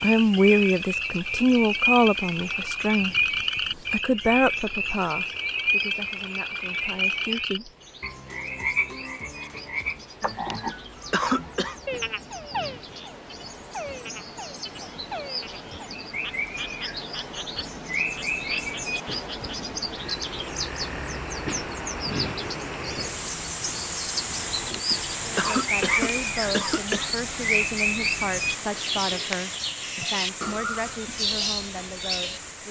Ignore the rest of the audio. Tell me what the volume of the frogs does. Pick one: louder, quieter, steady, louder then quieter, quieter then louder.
quieter.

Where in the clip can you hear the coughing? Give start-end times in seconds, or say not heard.
10.4-11.8, 24.7-27.1.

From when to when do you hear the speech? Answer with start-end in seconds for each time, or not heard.
0.0-3.1, 3.9-7.7, 25.2-32.6.